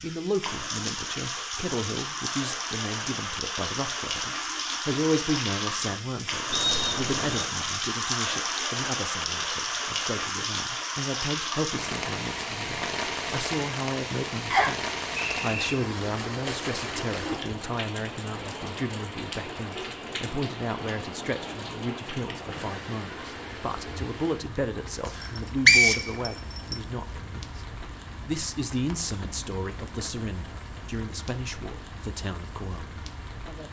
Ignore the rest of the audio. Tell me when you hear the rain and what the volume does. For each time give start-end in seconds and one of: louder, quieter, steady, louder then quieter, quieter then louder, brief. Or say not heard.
0.0-33.6 quieter.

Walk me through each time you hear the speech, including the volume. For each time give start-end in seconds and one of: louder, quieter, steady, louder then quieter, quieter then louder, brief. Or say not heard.
0.0-33.6 steady.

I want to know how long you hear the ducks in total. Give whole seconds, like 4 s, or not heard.
not heard.